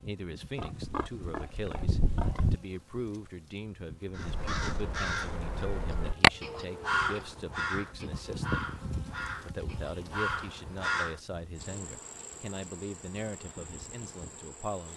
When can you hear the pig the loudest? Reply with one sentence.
The volume of the pig peaks at 2 seconds.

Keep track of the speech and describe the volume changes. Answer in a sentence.
The volume of the speech stays about the same.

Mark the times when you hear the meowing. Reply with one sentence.
The meowing can be heard from 6.0 to 7.2 s.